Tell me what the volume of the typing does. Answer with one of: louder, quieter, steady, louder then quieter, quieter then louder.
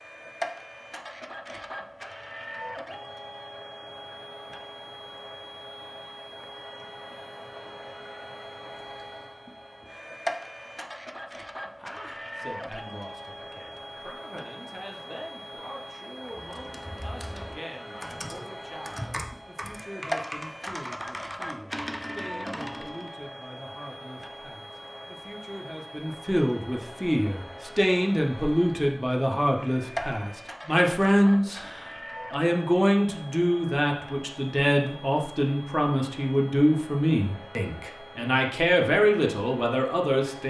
louder.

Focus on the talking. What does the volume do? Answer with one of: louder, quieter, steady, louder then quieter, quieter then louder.
louder.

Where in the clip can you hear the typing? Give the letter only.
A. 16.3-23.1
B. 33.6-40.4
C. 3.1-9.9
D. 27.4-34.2
A.